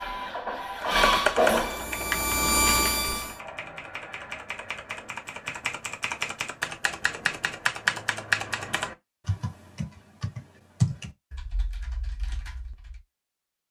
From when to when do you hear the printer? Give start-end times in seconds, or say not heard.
0.0-3.2.